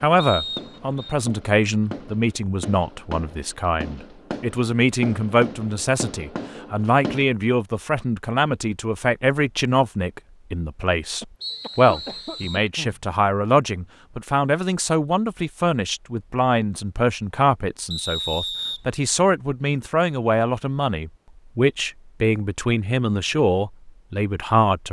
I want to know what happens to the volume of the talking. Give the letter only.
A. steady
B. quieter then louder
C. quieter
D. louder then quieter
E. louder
A.